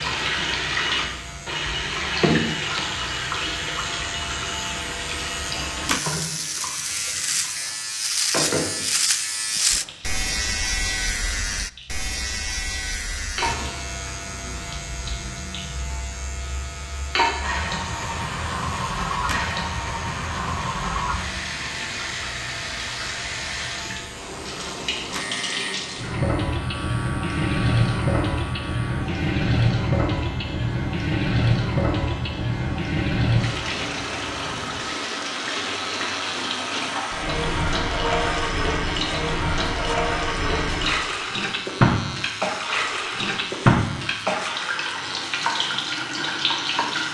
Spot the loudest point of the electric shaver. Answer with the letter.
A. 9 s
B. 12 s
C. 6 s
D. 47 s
A.